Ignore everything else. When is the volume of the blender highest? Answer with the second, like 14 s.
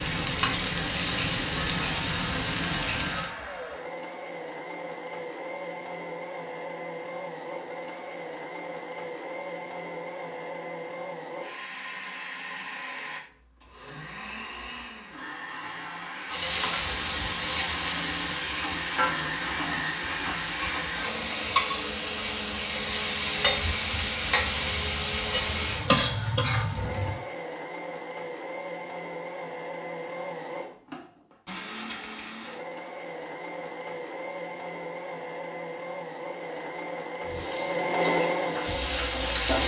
38 s.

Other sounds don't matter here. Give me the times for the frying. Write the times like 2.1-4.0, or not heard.
0.0-3.3, 16.3-27.2, 37.2-39.6.